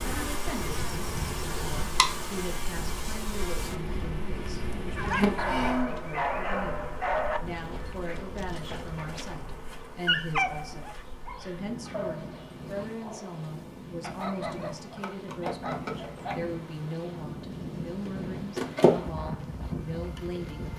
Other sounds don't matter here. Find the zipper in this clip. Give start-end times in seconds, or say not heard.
not heard.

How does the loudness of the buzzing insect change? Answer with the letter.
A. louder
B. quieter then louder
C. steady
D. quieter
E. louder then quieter
B.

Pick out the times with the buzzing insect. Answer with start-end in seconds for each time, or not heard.
0.0-20.7.